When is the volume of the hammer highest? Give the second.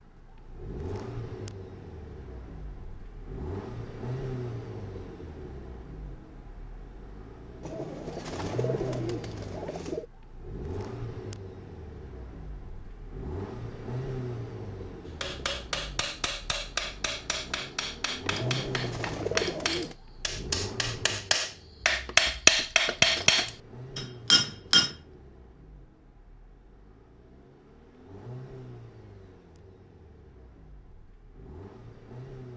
22 s.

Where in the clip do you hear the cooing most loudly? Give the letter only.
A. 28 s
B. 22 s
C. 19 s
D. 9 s
C.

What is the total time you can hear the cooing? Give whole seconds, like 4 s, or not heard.
4 s.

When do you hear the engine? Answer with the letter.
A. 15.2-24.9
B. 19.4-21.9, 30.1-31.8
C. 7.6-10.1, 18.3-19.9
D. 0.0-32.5
D.